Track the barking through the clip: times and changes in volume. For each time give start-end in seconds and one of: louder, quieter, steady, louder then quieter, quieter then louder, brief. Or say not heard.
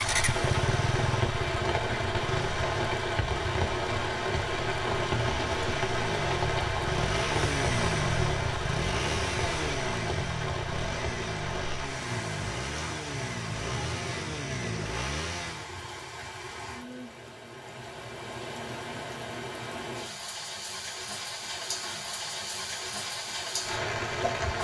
not heard.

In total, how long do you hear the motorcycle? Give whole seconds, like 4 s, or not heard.
16 s.